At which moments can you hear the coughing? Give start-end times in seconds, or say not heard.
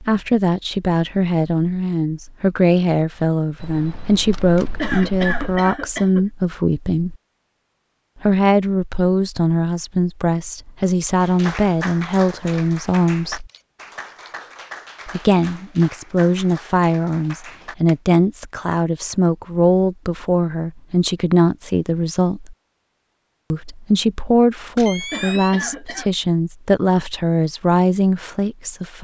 4.8-6.2, 25.1-26.1.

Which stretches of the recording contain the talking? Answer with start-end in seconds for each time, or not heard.
0.0-7.2, 8.2-13.5, 15.1-22.6, 23.5-28.9.